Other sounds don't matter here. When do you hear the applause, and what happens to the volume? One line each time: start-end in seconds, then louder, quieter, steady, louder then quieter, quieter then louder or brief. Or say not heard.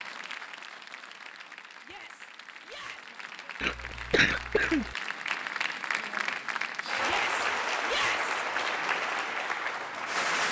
0.0-10.4 louder.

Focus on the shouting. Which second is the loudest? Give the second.
8 s.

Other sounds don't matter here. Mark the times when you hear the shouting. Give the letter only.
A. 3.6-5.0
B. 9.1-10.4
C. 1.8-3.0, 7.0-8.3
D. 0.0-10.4
C.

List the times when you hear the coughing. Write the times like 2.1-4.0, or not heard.
3.6-5.0.